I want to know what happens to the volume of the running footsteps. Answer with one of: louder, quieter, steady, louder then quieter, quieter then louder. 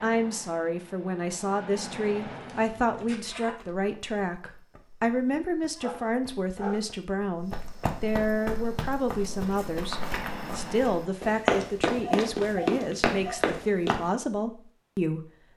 louder.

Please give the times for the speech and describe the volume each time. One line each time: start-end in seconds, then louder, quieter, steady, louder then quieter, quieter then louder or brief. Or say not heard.
0.0-15.5 steady.